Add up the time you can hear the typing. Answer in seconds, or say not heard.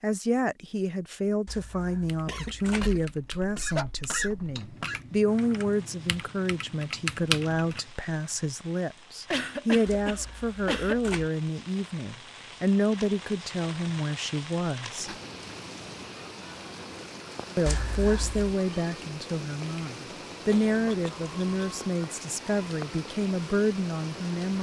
6 s.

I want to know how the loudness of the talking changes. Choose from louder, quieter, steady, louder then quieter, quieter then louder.
steady.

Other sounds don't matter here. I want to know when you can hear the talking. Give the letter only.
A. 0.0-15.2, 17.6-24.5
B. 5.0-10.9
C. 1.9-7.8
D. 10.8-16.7
A.